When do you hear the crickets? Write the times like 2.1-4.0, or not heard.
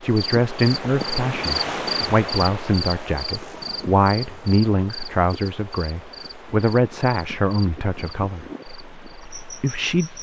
0.0-10.1.